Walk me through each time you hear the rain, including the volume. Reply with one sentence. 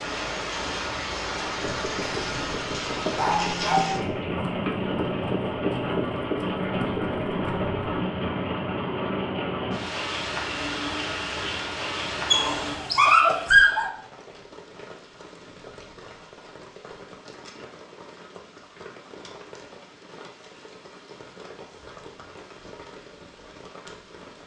You can hear the rain from 0.0 to 24.4 s, getting quieter.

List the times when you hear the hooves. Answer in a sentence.
You can hear the hooves from 1.4 to 7.8 s.